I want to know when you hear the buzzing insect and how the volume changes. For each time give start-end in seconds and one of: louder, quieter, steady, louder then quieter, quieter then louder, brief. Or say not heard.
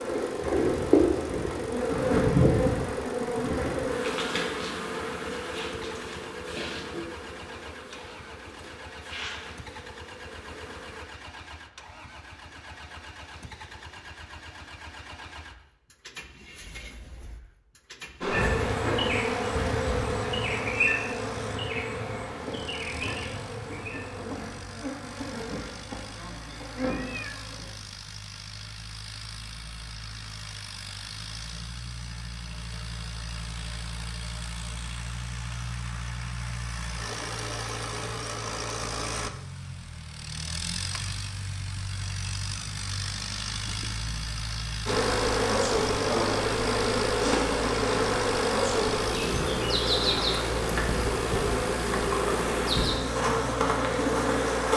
0.0-11.1 quieter
18.2-27.7 quieter
44.9-54.7 steady.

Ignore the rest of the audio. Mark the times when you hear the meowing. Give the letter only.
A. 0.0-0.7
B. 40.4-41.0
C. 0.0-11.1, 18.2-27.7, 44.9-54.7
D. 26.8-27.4
D.